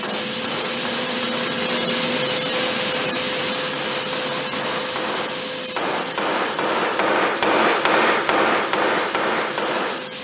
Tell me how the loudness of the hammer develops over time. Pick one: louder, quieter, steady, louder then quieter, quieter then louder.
louder.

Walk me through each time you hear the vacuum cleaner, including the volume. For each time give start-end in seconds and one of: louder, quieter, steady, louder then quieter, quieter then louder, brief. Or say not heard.
0.0-10.1 quieter.